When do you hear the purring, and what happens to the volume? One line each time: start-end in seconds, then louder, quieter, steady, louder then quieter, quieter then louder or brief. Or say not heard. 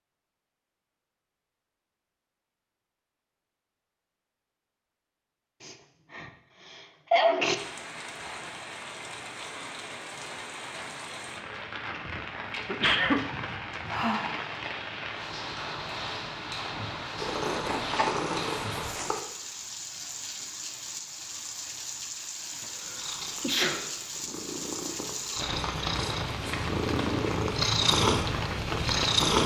17.1-19.2 brief
22.9-29.4 louder.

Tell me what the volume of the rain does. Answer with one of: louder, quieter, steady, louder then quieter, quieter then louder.
louder.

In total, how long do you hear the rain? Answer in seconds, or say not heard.
22 s.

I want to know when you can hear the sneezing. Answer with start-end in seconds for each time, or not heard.
5.6-7.5, 12.7-13.2, 22.9-23.9.